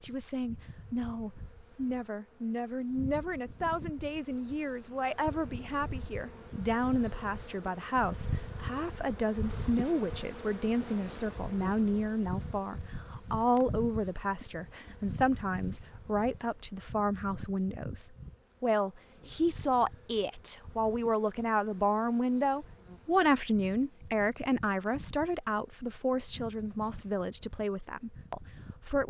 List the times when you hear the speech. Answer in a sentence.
The speech can be heard from 0.0 to 29.0 s.